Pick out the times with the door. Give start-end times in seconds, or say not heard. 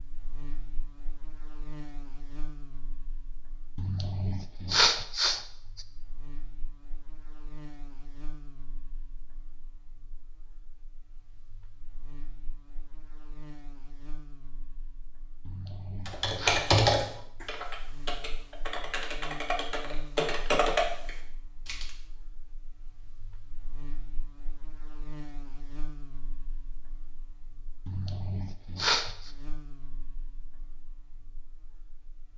not heard.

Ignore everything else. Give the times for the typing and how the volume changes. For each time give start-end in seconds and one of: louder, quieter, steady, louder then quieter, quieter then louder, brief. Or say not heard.
16.1-21.9 quieter then louder.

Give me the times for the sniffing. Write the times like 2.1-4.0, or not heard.
3.8-5.8, 15.4-16.7, 27.9-29.3.